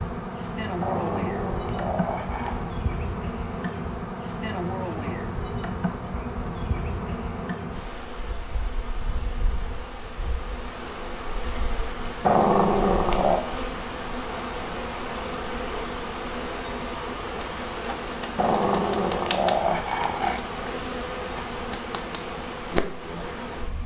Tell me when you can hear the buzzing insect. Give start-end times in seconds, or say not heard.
0.0-23.8.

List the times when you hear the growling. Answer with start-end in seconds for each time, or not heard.
0.8-2.7, 12.2-13.4, 18.4-20.4.